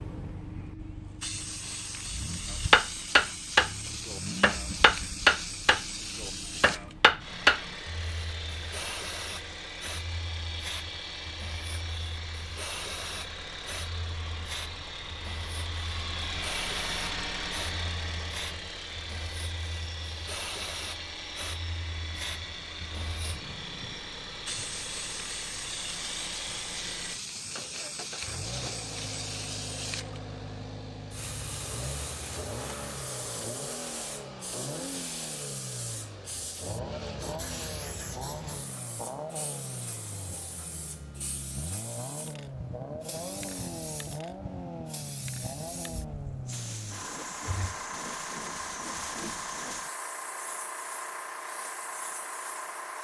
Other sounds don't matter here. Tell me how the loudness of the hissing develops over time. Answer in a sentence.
The loudness of the hissing stays about the same.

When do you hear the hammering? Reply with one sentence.
The hammering can be heard from 2.7 to 7.6 s.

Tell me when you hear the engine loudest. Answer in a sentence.
The volume of the engine peaks at 17 seconds.